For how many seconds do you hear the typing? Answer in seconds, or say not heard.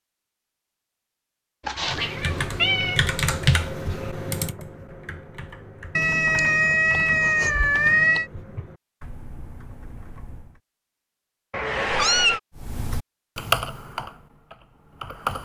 12 s.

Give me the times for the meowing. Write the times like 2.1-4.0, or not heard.
1.6-3.0, 6.0-8.2, 11.5-12.4.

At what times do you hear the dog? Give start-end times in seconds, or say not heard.
not heard.